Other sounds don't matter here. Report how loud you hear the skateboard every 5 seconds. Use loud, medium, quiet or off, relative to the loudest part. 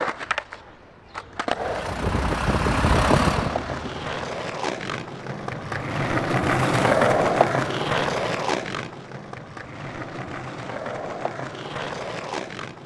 medium, loud, medium.